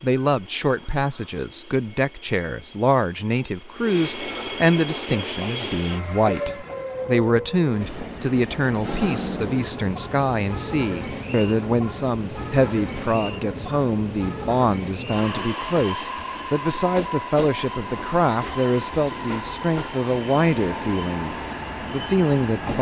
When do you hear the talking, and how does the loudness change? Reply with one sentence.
You can hear the talking from 0.0 to 22.7 s, at a steady volume.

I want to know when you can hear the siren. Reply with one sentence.
You can't hear the siren here.